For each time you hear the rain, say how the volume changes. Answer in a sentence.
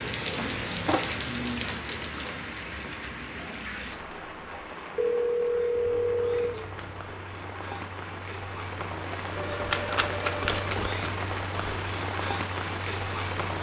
You can hear the rain from 0.0 to 13.5 s, getting quieter then louder.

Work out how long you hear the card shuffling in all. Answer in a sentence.
You can hear the card shuffling for 3 seconds altogether.